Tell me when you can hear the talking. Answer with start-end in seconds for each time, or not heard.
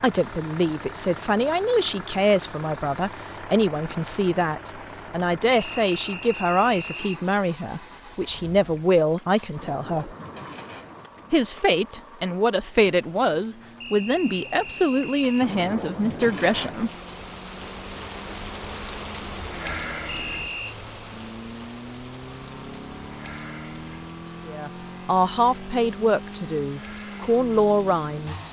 0.0-10.2, 11.3-16.9, 24.4-28.4.